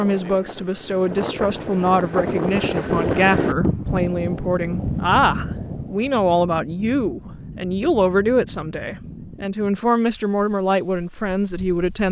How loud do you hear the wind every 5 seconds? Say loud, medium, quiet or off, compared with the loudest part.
loud, medium, quiet.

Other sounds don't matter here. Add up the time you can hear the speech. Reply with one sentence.
You can hear the speech for 12 seconds altogether.